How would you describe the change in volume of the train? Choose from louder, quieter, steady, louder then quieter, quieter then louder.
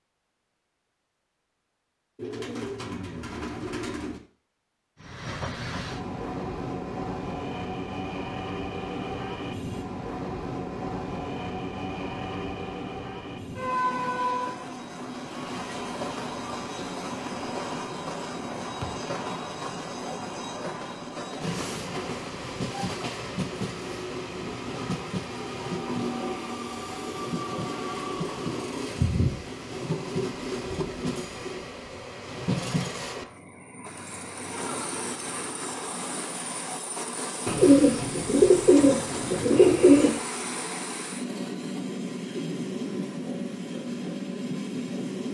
steady.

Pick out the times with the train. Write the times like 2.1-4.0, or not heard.
5.0-45.2.